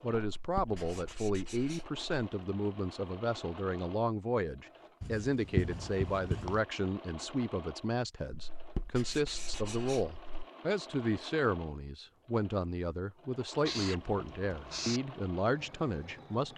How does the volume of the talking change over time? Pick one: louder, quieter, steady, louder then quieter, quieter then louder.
steady.